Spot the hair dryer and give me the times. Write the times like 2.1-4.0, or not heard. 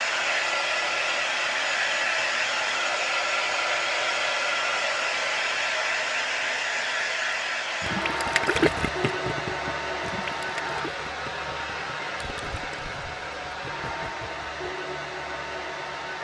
0.0-16.1.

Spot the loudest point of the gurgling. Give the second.
9 s.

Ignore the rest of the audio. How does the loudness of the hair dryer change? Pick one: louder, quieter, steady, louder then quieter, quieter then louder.
quieter.